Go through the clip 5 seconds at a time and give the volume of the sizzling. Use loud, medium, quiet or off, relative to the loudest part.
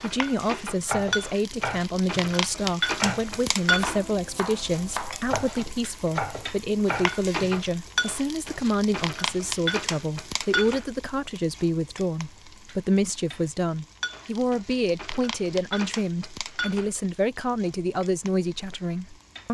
loud, loud, medium, medium.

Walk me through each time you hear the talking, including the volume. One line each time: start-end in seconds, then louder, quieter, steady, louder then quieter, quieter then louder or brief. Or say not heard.
0.0-19.5 steady.